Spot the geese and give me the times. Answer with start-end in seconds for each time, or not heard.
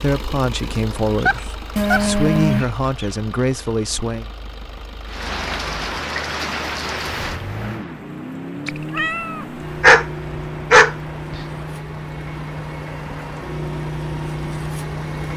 not heard.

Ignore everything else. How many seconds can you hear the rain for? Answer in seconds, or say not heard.
10 s.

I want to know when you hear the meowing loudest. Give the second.
2 s.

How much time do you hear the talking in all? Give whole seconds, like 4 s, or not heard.
4 s.